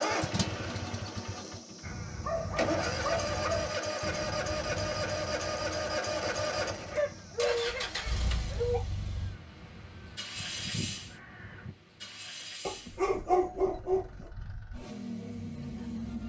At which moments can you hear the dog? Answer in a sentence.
You can hear the dog from 2.2 to 3.9 s, from 6.8 to 8.8 s and from 12.7 to 14.3 s.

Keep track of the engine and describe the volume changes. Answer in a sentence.
The loudness of the engine goes down.